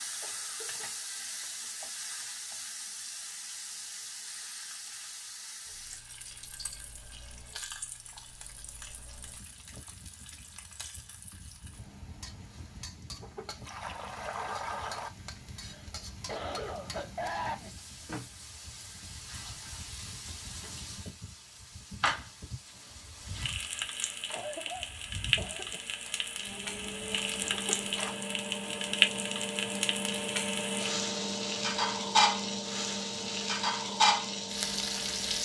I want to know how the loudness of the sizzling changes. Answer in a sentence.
The volume of the sizzling goes down, then up.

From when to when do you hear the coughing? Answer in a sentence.
The coughing can be heard from 0.2 to 1.4 s, from 15.6 to 17.6 s and from 24.3 to 25.8 s.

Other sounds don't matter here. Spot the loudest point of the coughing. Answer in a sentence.
The loudest moment of the coughing is at 17 seconds.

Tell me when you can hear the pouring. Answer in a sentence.
The pouring can be heard from 13.2 to 15.1 s and from 27.5 to 28.1 s.